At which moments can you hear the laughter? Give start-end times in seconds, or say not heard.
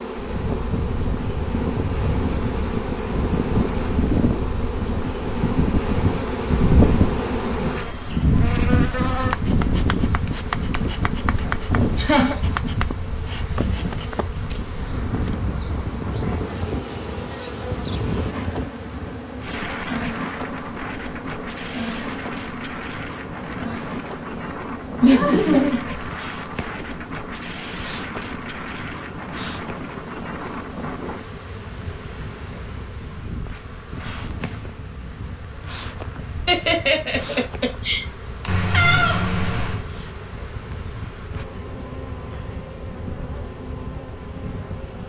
11.9-12.3, 25.0-26.1, 36.5-38.5.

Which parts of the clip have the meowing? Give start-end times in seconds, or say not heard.
38.5-39.9.